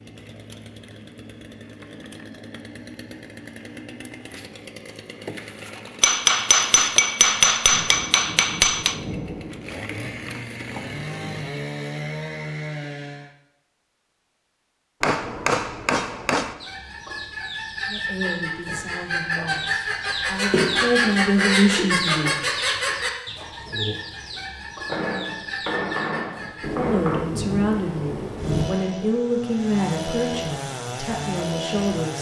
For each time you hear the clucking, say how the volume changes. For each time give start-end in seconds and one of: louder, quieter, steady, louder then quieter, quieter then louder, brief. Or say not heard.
16.6-26.7 louder then quieter.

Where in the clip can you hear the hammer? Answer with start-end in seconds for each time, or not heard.
6.0-8.9, 15.0-16.6, 24.9-27.2.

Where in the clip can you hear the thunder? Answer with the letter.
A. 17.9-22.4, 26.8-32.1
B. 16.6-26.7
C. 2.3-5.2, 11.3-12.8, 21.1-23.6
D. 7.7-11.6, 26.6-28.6
D.